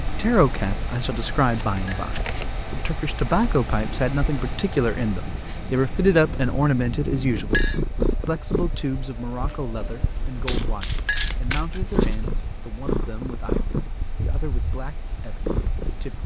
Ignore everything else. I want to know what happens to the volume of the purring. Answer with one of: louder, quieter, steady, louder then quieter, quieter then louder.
louder.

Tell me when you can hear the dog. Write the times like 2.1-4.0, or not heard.
not heard.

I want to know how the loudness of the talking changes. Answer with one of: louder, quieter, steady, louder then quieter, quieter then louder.
quieter.